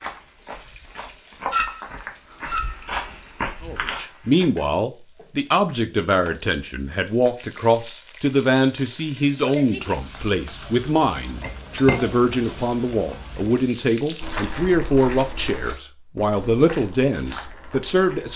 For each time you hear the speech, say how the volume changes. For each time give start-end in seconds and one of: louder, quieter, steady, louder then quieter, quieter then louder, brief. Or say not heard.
3.6-18.3 steady.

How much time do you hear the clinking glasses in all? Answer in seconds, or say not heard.
4 s.